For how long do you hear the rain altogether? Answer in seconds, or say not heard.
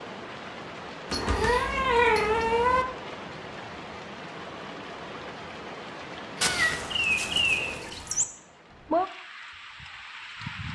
11 s.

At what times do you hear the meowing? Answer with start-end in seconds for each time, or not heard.
1.1-2.9, 6.4-8.2.